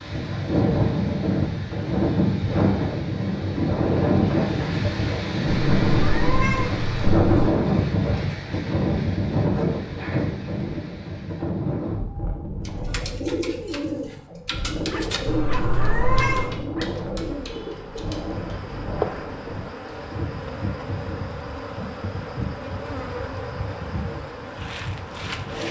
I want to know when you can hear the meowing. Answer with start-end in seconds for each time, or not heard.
5.5-7.5, 15.2-16.6.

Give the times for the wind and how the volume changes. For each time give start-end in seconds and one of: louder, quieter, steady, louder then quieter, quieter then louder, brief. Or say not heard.
0.0-25.6 quieter.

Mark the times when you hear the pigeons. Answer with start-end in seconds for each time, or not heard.
12.7-18.5.